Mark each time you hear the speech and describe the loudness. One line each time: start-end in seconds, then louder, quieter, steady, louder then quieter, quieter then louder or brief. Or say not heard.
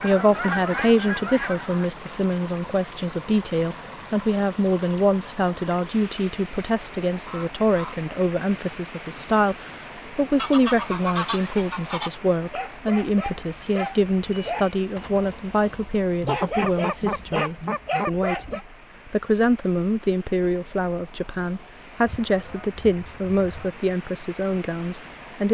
0.0-25.4 steady.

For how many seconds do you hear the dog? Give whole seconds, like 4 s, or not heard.
6 s.